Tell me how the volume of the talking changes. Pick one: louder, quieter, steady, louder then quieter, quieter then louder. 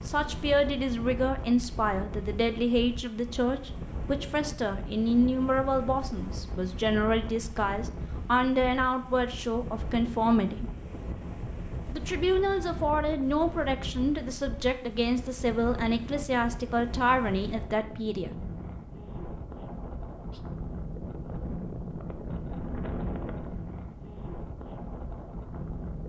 steady.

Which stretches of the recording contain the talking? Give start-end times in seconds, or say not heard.
0.0-10.7, 11.9-18.4.